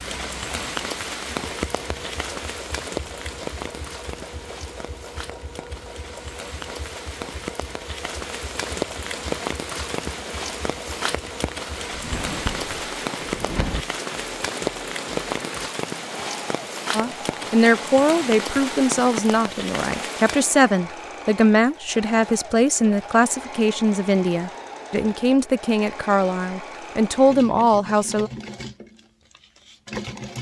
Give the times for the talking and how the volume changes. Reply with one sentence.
You can hear the talking from 16.9 to 28.3 s, at a steady volume.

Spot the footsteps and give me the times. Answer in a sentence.
The footsteps can't be heard in this clip.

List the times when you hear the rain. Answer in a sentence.
You can hear the rain from 0.0 to 20.6 s.